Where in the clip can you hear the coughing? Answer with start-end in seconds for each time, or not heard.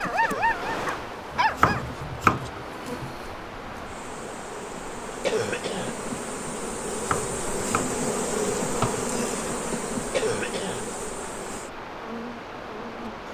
0.2-0.7, 5.2-6.0, 10.1-10.8.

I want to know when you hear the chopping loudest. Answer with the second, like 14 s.
2 s.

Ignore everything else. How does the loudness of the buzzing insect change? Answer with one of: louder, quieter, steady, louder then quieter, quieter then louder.
louder then quieter.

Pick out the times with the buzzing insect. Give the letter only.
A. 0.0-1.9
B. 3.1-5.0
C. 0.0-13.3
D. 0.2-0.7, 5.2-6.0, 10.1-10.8
C.